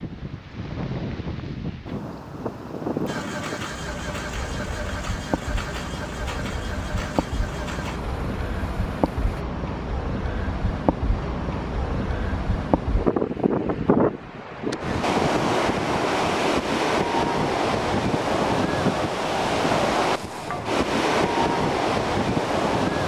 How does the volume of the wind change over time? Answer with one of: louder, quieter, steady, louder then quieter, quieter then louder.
louder.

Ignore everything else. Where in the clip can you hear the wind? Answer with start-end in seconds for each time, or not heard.
0.0-23.0.